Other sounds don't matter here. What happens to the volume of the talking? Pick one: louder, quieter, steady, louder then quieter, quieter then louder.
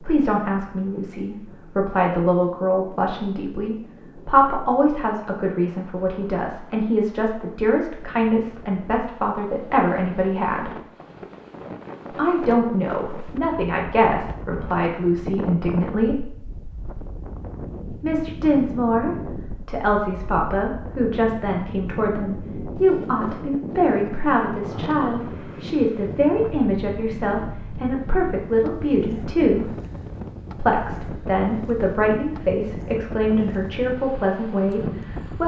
steady.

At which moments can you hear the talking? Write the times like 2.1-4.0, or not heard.
0.0-10.8, 12.1-16.2, 18.0-29.7, 30.6-35.4.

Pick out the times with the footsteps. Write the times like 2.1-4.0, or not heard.
not heard.